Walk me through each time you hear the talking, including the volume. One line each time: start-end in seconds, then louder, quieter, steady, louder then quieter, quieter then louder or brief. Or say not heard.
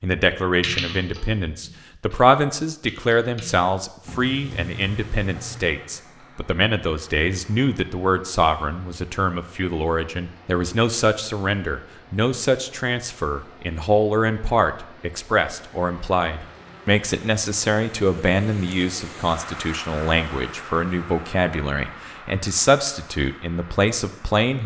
0.0-24.6 steady.